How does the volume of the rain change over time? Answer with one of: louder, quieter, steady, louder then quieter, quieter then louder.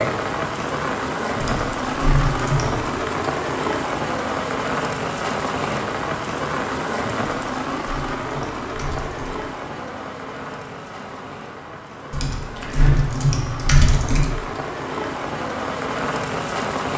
quieter then louder.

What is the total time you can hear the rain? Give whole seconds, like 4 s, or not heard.
17 s.